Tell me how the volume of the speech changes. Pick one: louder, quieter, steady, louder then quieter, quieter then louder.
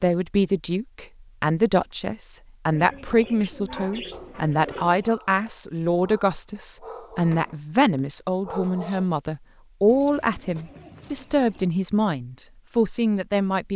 steady.